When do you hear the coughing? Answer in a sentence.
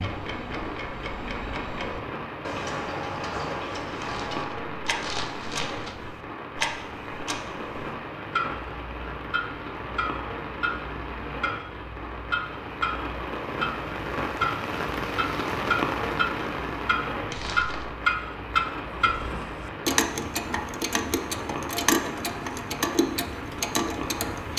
You can't hear the coughing here.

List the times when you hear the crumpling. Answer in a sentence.
The crumpling can be heard from 4.0 to 6.0 s and from 17.3 to 17.9 s.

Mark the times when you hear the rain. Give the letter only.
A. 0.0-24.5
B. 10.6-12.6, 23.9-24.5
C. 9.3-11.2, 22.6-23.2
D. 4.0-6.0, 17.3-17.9
A.